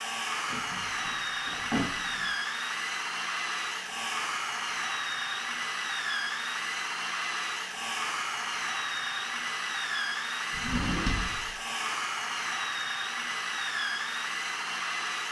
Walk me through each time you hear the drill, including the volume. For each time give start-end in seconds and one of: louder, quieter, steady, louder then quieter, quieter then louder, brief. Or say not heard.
0.0-15.2 steady.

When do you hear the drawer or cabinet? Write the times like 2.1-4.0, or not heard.
0.5-2.2, 10.5-11.5.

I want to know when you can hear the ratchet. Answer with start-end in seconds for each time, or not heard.
not heard.